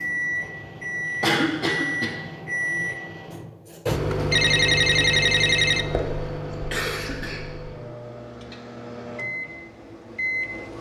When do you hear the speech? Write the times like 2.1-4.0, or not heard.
not heard.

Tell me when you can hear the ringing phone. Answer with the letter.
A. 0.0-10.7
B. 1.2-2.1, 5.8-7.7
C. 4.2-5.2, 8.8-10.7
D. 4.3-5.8
D.